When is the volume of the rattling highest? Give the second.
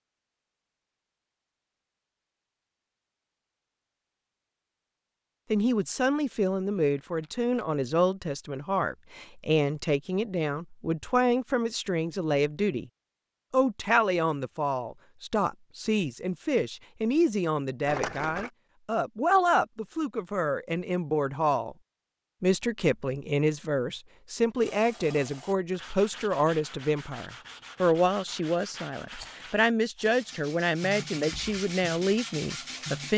18 s.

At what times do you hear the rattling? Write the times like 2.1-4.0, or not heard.
7.0-7.7, 17.9-18.5, 29.1-30.1.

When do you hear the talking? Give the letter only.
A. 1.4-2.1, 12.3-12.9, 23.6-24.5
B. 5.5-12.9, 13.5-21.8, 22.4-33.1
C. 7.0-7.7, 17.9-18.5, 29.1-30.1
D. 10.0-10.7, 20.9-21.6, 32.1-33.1
B.